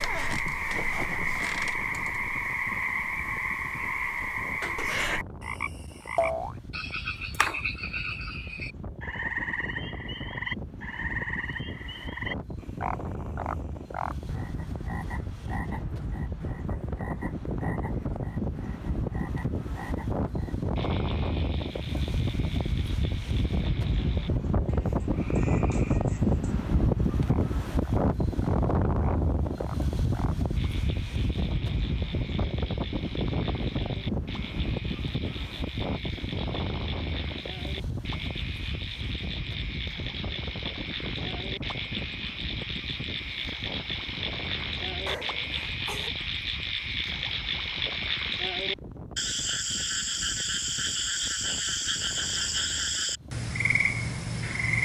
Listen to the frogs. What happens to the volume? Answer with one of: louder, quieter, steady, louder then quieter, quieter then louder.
quieter then louder.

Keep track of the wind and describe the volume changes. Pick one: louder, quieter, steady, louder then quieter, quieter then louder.
louder then quieter.